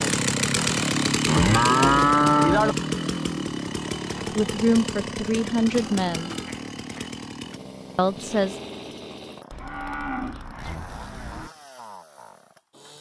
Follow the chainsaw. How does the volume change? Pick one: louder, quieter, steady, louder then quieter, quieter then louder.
quieter.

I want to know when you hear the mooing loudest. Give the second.
2 s.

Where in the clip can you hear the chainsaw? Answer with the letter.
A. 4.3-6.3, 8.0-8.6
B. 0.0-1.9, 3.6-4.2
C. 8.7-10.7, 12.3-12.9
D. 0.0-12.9
D.